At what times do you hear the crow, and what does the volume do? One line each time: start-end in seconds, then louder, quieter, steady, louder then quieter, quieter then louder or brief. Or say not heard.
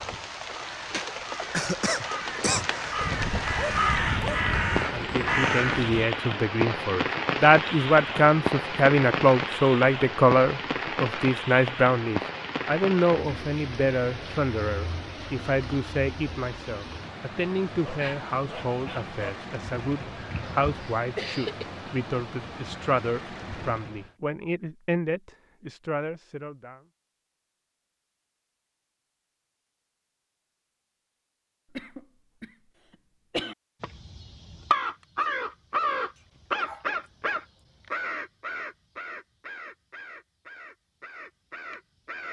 0.0-6.0 louder
33.8-42.2 quieter.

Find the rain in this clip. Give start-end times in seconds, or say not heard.
0.0-24.1.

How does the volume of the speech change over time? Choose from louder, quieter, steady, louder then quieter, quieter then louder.
quieter.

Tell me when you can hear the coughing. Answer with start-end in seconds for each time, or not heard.
1.5-2.8, 20.8-21.6, 31.7-33.5.